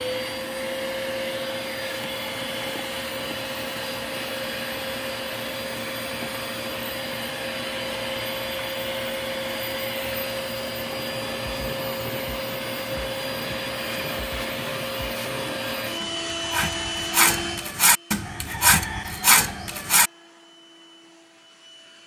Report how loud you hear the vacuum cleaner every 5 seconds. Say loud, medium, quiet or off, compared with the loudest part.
loud, loud, loud, loud, quiet.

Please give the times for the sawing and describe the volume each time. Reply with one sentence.
You can hear the sawing from 10.8 to 20.1 s, getting louder.